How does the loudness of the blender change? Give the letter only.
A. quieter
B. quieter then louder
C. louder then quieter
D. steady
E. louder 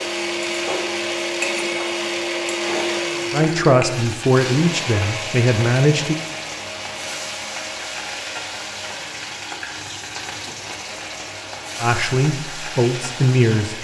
A.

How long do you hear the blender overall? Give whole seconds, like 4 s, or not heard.
14 s.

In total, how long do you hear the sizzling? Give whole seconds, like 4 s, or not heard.
14 s.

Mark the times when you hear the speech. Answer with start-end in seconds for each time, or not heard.
3.3-6.2, 11.8-13.7.